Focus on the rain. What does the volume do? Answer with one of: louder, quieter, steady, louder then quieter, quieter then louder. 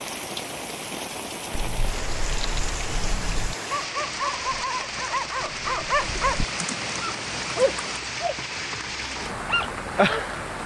steady.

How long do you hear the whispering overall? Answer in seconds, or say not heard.
not heard.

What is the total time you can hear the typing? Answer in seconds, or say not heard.
4 s.